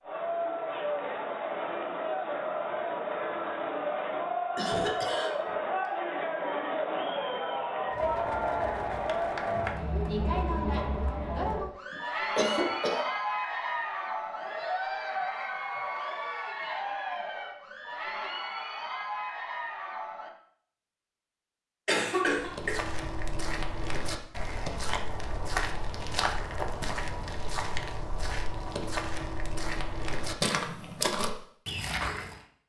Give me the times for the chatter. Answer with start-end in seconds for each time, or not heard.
0.0-20.3.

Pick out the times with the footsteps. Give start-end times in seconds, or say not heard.
22.3-32.4.